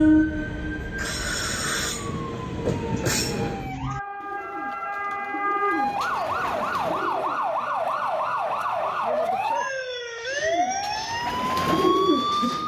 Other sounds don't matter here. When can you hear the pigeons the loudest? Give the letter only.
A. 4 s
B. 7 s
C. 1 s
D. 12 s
D.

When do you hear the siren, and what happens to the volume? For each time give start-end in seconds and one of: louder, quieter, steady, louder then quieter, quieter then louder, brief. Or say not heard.
0.0-12.6 louder.